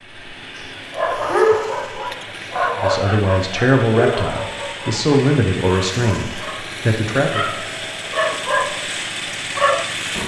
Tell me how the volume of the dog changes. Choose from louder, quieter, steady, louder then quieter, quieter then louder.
quieter then louder.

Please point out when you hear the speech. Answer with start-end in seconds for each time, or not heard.
2.8-7.5.